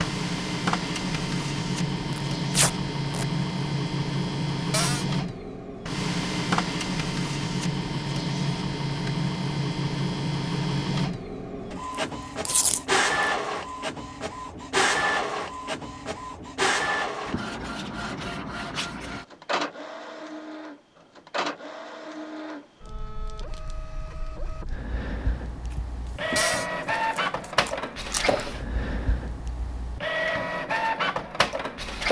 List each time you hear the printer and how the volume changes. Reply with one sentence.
The printer can be heard from 0.0 to 32.0 s, getting quieter then louder.